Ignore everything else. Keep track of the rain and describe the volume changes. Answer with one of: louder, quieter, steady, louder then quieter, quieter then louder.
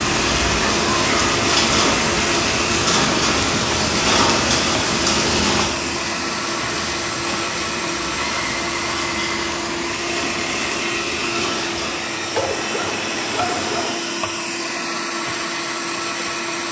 quieter.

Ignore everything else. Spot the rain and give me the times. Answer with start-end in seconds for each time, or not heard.
0.0-14.1.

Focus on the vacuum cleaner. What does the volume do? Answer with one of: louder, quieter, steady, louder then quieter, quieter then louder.
steady.